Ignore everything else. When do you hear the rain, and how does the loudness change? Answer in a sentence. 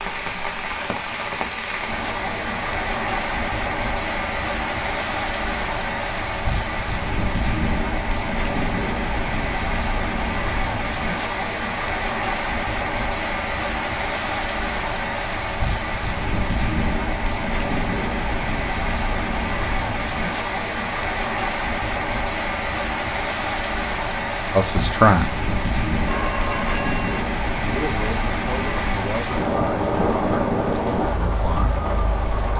You can hear the rain from 0.0 to 32.5 s, at a steady volume.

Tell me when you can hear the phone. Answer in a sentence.
The phone can be heard from 26.1 to 27.2 s.